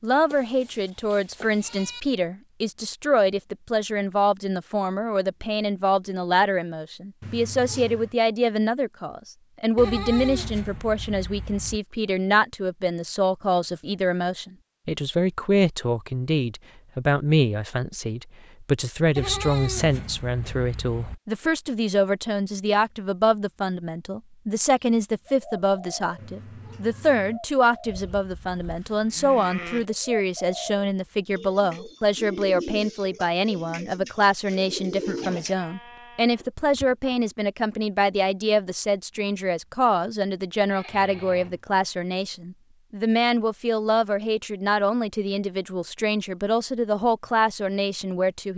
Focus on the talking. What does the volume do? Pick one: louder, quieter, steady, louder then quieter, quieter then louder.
steady.